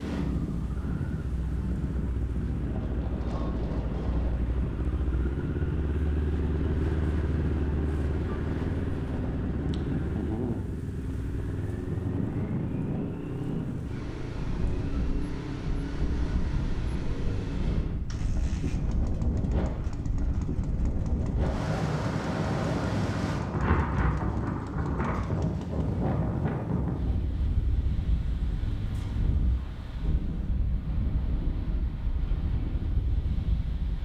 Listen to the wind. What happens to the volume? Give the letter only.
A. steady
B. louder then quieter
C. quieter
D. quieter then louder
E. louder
B.